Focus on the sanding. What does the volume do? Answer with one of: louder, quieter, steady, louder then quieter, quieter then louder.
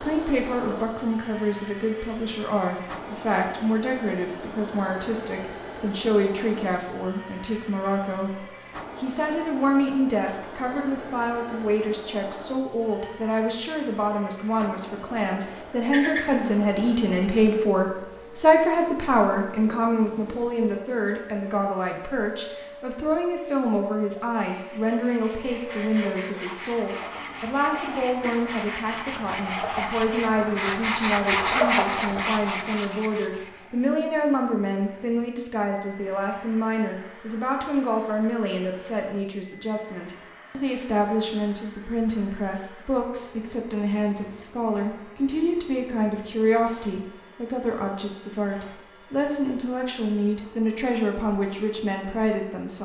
louder.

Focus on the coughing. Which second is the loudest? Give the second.
16 s.